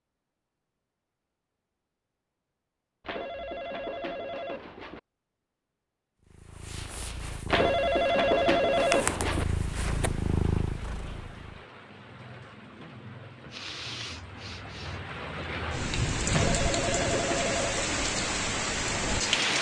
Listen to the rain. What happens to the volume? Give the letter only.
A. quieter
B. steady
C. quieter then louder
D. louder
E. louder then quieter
D.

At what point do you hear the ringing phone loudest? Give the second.
8 s.